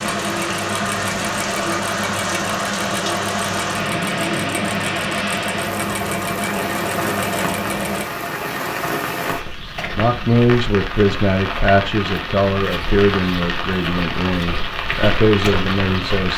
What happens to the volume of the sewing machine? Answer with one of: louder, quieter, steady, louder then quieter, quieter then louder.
steady.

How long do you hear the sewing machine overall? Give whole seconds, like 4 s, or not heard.
8 s.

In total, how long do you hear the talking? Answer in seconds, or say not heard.
6 s.